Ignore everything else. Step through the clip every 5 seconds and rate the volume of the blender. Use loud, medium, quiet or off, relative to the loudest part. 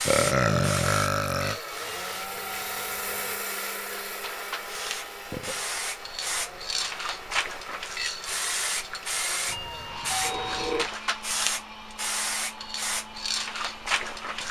loud, medium, medium.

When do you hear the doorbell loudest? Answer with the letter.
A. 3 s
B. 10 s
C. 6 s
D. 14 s
B.